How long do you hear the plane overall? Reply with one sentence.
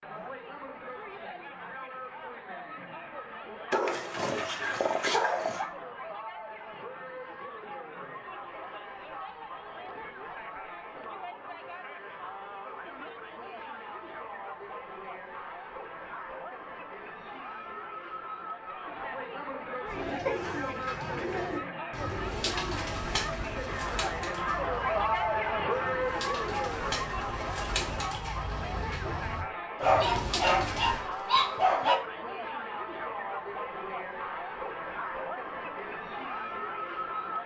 You can't hear the plane here.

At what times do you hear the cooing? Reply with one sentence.
You can hear the cooing from 19.9 to 31.1 s.